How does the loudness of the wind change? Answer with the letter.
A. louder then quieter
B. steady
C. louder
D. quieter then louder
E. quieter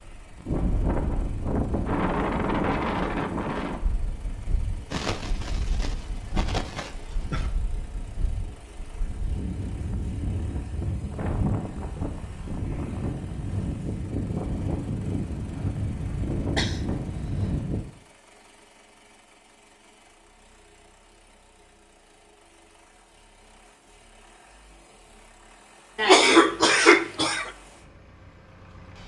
D.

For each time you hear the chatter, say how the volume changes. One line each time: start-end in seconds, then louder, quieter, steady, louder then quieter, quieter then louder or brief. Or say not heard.
not heard.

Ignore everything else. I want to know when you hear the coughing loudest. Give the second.
26 s.